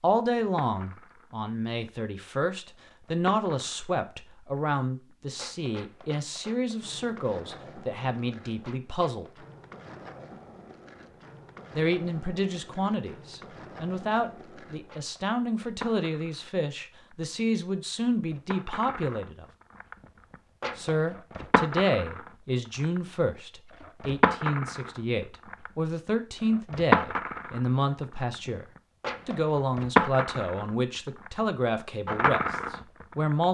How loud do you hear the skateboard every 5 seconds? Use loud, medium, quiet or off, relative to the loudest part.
quiet, quiet, quiet, quiet, medium, loud, medium.